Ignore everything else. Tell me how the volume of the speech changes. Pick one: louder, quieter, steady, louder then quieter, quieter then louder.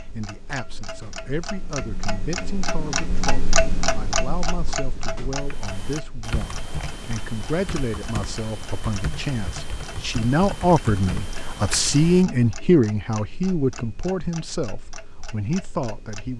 louder then quieter.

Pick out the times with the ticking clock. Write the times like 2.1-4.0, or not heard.
0.0-16.3.